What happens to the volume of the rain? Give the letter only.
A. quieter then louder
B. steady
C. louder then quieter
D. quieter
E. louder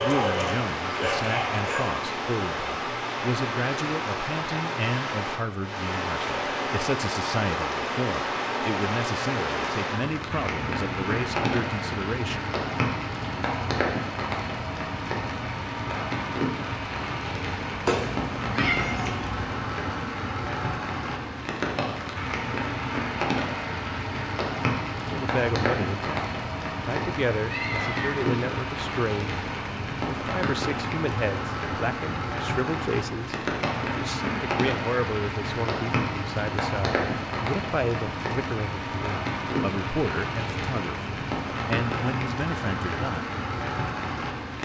B.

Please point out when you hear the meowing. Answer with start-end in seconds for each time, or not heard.
17.7-19.4, 27.4-28.1.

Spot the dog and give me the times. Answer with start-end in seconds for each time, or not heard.
0.0-1.9.